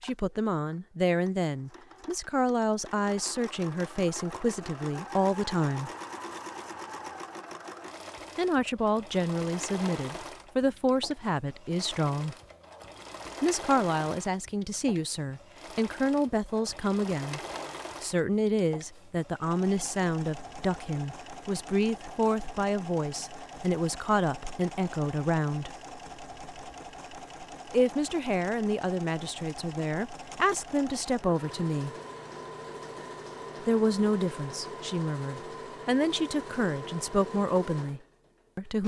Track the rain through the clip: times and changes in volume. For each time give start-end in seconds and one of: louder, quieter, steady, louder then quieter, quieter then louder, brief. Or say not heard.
not heard.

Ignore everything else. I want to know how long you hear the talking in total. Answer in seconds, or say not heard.
31 s.